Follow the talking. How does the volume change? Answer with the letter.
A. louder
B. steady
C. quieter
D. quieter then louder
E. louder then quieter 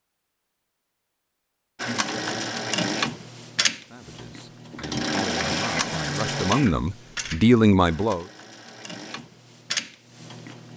A.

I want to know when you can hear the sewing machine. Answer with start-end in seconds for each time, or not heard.
1.8-10.7.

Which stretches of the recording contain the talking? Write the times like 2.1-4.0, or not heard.
3.9-8.2.